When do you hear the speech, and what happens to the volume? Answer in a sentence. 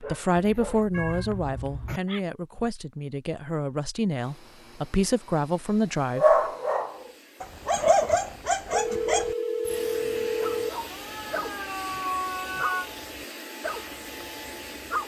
The speech can be heard from 0.0 to 6.4 s, getting quieter then louder.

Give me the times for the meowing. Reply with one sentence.
The meowing can be heard from 0.3 to 2.0 s and from 10.9 to 12.9 s.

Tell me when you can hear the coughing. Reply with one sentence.
The coughing can't be heard in this clip.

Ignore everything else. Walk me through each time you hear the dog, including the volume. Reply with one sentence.
The dog can be heard briefly from 0.0 to 2.2 s; and from 6.2 to 15.0 s, getting quieter.